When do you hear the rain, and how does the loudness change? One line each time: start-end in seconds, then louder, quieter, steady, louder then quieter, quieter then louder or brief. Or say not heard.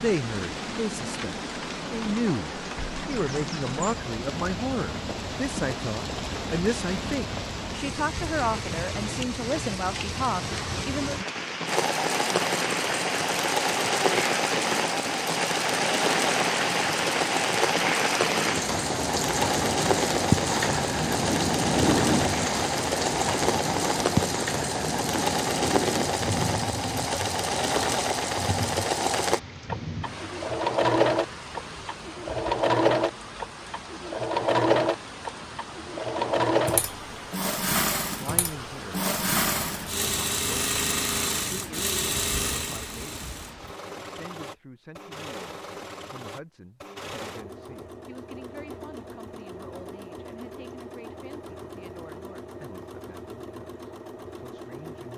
0.0-43.8 louder then quieter.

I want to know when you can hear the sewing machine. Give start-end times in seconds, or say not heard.
11.7-55.1.